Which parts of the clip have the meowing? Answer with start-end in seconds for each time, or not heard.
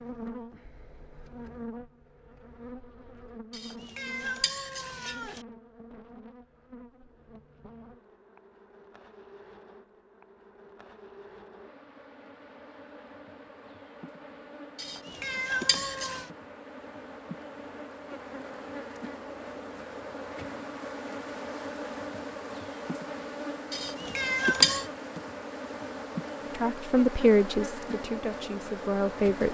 3.5-5.4, 14.8-16.3, 23.7-24.9.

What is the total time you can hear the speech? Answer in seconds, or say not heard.
3 s.